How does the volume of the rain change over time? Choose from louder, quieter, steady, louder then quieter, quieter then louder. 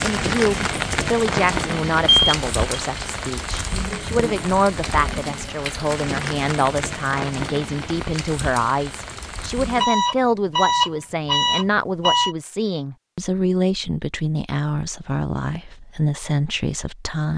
quieter.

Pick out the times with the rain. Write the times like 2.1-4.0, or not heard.
0.0-9.8.